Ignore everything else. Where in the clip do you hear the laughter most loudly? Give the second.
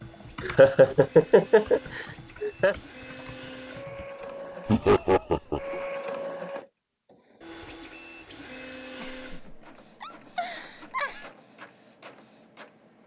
1 s.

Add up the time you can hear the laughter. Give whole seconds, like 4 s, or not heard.
6 s.